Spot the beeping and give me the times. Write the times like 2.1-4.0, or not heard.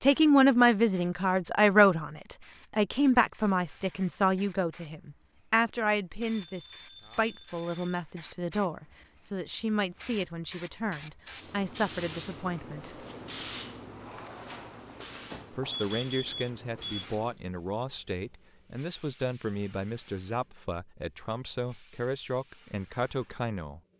6.2-8.0, 15.3-17.1.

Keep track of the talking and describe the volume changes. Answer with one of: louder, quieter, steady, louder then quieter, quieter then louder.
quieter.